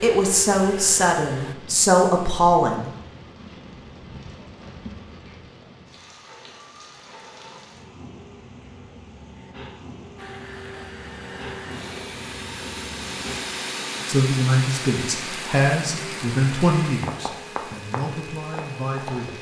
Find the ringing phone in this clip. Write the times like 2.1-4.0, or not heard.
not heard.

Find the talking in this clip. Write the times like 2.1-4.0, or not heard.
0.0-2.9, 14.1-19.3.